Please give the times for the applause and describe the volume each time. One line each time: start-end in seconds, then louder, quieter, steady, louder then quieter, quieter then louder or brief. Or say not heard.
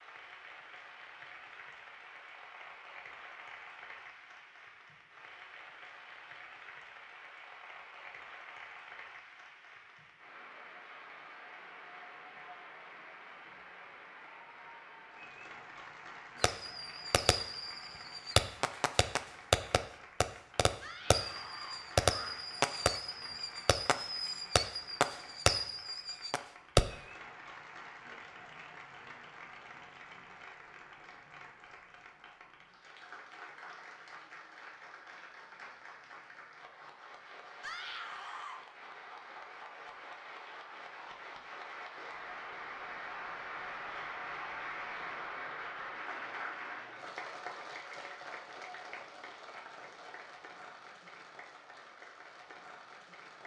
0.0-53.4 louder.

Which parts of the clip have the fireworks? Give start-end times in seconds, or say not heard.
16.4-26.9.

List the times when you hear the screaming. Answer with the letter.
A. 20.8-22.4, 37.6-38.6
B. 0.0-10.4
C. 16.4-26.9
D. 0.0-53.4
A.